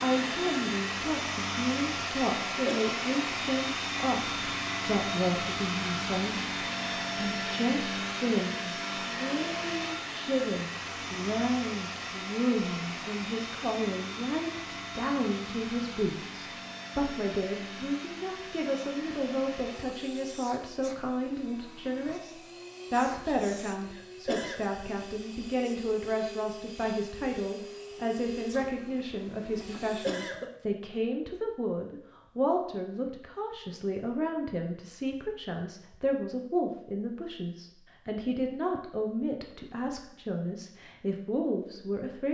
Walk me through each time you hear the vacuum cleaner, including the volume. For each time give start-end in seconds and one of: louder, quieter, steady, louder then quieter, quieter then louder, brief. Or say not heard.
0.0-30.4 quieter.